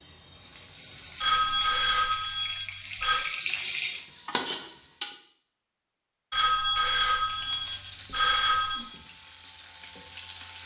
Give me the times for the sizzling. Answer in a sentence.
You can hear the sizzling from 0.0 to 5.2 s and from 7.2 to 10.6 s.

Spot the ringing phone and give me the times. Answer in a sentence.
You can hear the ringing phone from 1.2 to 3.2 s and from 6.3 to 8.8 s.